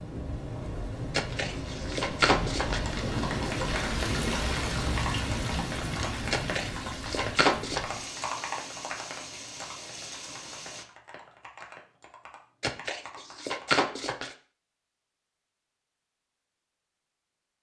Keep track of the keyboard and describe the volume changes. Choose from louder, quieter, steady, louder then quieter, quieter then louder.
quieter.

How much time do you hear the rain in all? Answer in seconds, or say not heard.
11 s.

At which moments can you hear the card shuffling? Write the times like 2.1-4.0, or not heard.
1.1-2.8, 6.3-7.8, 12.6-14.3.